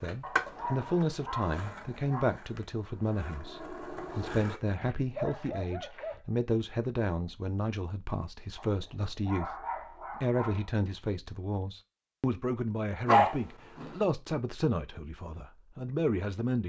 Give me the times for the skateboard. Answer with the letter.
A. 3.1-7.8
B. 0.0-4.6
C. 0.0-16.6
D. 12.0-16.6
B.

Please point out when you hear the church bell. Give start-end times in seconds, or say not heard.
not heard.